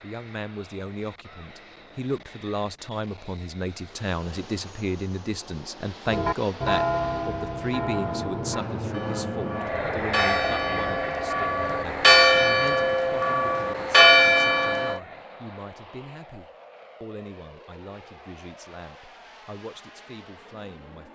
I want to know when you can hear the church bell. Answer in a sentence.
You can hear the church bell from 6.0 to 15.0 s.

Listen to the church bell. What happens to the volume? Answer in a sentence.
The loudness of the church bell goes down, then up.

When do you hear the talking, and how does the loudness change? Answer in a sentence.
The talking can be heard from 0.0 to 21.1 s, getting quieter.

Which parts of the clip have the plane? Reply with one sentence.
You can hear the plane from 0.0 to 21.1 s.